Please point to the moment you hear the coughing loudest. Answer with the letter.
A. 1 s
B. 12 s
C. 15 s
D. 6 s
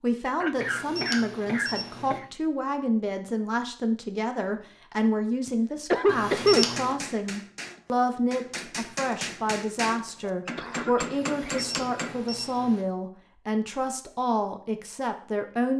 D.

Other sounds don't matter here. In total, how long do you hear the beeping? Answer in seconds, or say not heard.
4 s.